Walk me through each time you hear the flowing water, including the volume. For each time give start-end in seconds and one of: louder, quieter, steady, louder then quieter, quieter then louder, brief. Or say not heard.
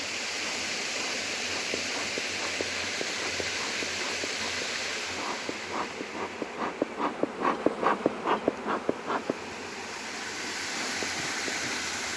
0.0-12.1 quieter then louder.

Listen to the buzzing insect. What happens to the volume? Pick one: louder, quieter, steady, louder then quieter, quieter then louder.
louder then quieter.